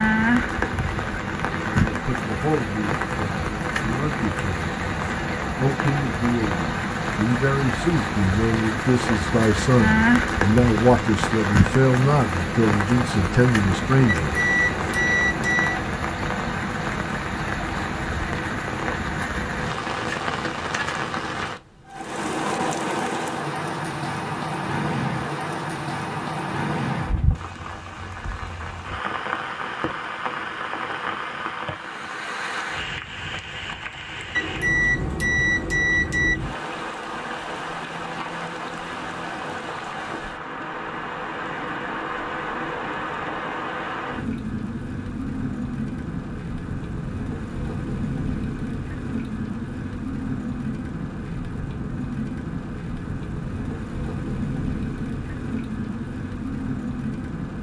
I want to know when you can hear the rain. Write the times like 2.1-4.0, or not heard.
0.0-57.5.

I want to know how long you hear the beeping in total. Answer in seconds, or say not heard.
4 s.